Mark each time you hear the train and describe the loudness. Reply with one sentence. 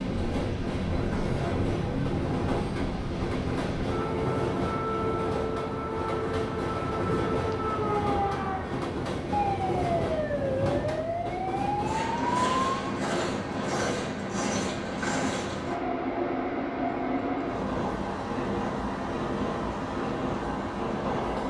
The train can be heard from 0.0 to 21.4 s, at a steady volume.